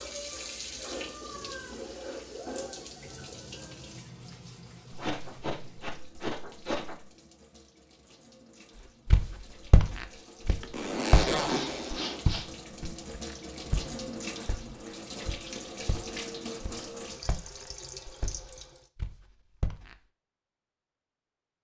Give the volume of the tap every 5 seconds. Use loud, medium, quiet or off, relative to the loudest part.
loud, quiet, loud, loud, off.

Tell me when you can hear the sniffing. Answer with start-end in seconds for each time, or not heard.
4.9-7.0, 11.1-12.4.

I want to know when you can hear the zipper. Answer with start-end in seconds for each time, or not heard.
10.7-12.2.